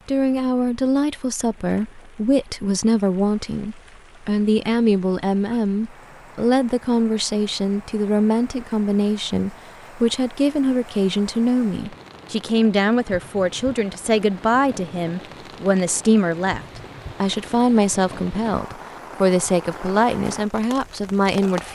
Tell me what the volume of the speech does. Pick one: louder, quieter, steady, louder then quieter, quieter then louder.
steady.